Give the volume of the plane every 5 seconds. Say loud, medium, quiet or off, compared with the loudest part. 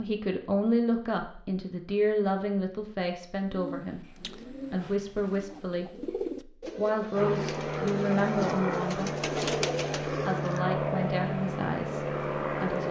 off, loud, loud.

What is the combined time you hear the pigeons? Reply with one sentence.
The pigeons can be heard for 7 seconds in total.